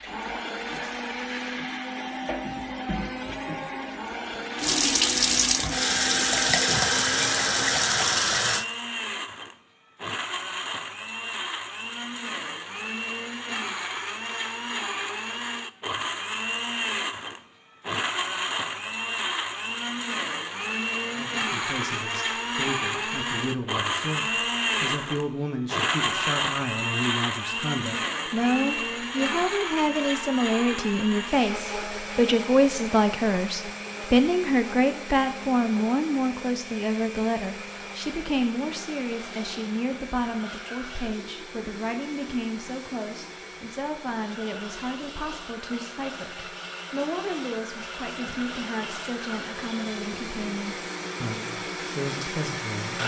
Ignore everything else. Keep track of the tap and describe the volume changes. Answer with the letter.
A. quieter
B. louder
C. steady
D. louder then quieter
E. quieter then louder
B.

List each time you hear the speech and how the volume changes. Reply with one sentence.
You can hear the speech from 21.1 to 53.0 s, getting louder then quieter.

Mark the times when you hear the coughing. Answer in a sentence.
You can't hear the coughing here.